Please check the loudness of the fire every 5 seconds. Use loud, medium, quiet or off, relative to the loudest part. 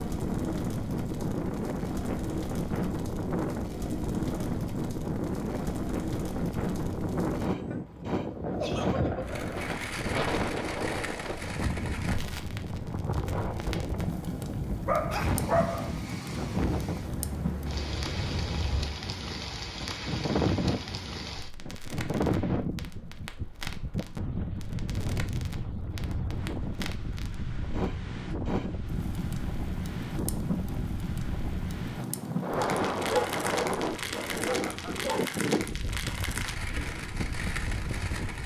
medium, loud, loud, loud, medium, loud, loud, loud.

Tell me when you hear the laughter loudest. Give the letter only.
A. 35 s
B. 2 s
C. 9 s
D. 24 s
C.